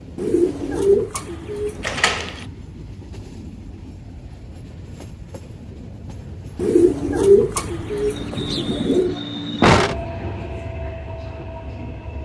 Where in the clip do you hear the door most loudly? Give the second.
10 s.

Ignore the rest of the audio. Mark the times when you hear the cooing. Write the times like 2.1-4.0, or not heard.
0.1-2.0, 6.5-9.2.